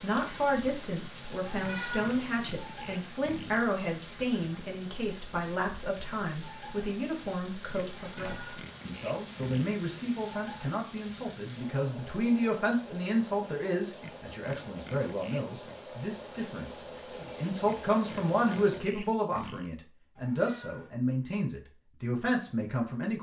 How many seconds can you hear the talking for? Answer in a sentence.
You can hear the talking for 23 seconds altogether.